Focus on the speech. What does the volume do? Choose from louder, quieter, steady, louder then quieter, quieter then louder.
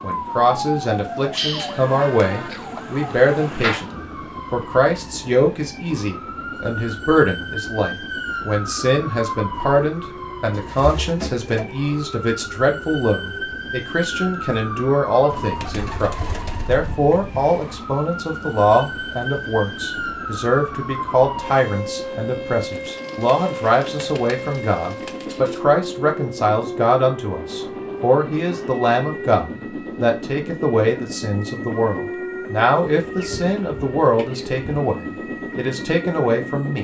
steady.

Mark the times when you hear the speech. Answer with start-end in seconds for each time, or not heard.
0.0-36.7.